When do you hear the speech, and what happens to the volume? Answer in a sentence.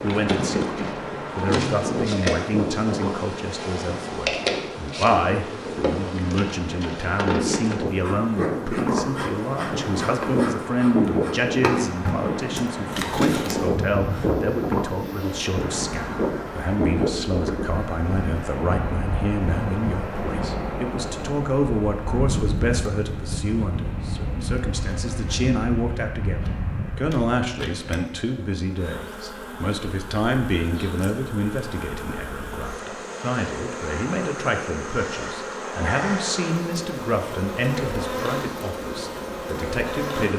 You can hear the speech from 0.0 to 40.3 s, at a steady volume.